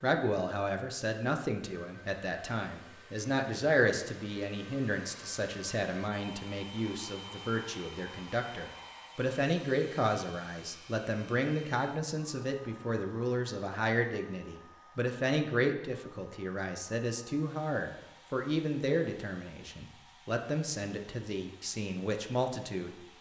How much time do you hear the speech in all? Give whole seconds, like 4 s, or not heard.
23 s.